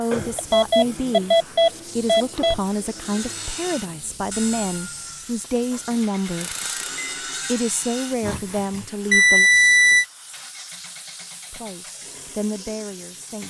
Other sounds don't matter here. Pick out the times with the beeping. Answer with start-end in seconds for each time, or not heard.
0.1-2.5, 6.4-7.0, 9.1-10.1.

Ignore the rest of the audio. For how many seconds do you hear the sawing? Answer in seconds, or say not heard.
6 s.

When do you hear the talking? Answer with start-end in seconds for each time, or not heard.
0.0-1.4, 1.9-6.5, 7.5-9.5, 11.5-13.4.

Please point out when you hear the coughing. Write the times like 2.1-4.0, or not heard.
not heard.